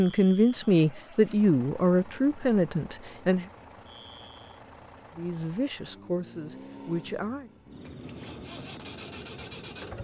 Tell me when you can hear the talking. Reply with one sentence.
The talking can be heard from 0.0 to 3.5 s and from 5.2 to 7.5 s.